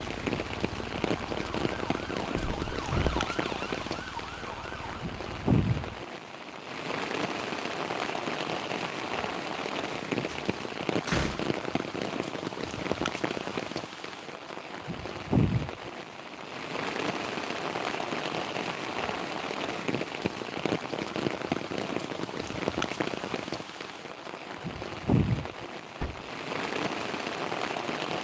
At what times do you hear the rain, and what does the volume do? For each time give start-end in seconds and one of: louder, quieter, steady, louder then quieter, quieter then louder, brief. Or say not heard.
0.0-28.1 steady.